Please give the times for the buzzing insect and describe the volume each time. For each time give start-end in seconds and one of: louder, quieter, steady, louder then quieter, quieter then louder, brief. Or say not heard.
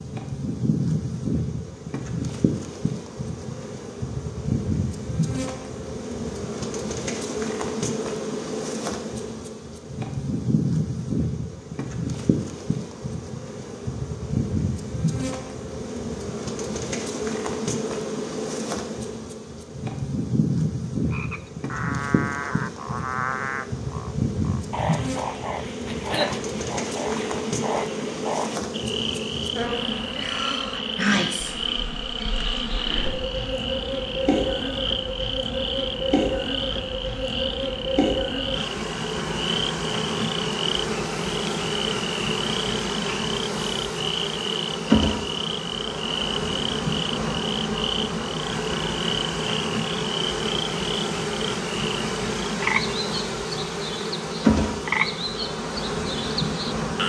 0.0-57.0 steady.